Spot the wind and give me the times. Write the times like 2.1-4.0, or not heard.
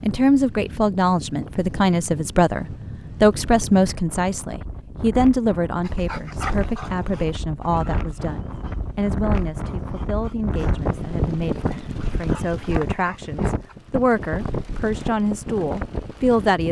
0.0-16.6.